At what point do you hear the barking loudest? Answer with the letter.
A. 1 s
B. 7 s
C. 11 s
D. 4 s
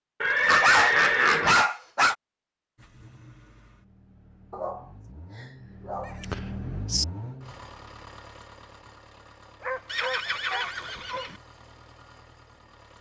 A.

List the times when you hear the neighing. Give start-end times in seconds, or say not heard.
0.2-1.6, 6.0-7.0, 9.9-11.3.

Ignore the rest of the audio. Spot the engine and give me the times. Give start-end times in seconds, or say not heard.
2.8-12.9.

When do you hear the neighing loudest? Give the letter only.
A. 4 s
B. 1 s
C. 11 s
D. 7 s
B.